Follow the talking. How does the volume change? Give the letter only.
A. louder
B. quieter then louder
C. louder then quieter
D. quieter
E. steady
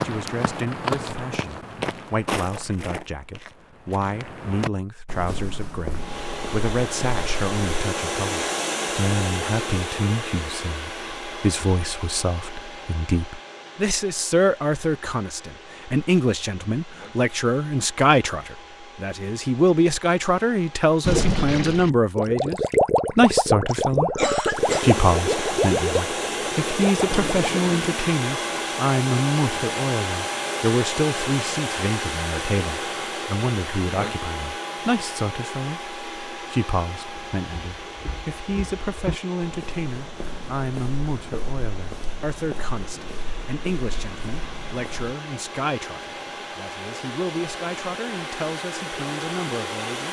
C.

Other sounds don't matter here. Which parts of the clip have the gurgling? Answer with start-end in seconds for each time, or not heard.
21.0-27.6.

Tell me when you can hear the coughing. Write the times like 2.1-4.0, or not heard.
23.6-24.9.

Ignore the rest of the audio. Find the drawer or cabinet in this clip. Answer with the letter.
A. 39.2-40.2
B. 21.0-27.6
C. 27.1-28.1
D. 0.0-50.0
C.